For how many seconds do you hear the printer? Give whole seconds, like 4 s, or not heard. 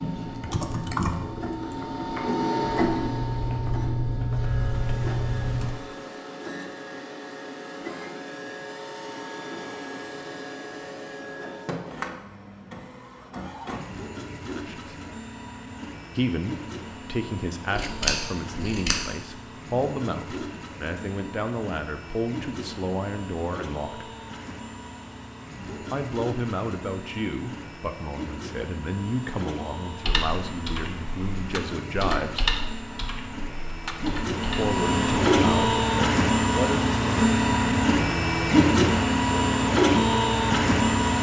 41 s.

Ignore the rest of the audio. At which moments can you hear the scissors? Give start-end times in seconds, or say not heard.
17.8-19.1.